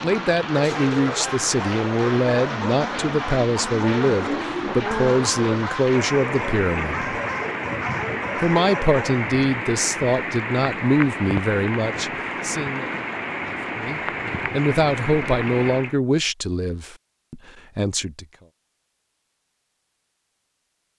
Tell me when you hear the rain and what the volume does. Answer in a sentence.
The rain can be heard from 0.0 to 16.0 s, at a steady volume.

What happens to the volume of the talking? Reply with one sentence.
The loudness of the talking stays about the same.